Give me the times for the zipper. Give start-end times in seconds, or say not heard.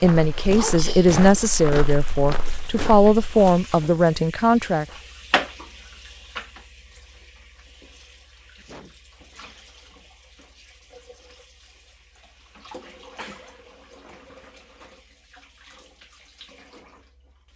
not heard.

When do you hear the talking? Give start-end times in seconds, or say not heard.
0.0-4.8.